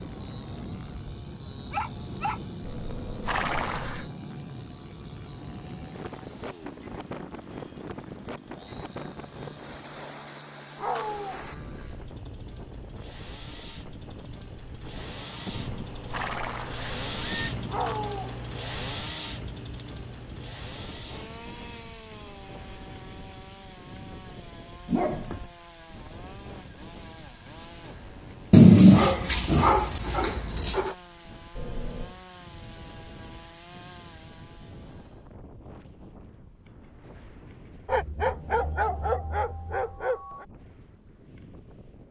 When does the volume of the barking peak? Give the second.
29 s.